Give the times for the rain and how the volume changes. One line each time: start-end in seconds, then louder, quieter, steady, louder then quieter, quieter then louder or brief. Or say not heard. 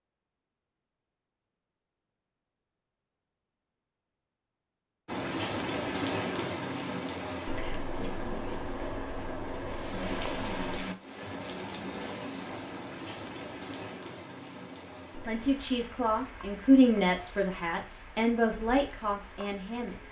5.0-20.0 quieter.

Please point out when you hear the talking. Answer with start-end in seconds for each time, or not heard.
15.2-20.0.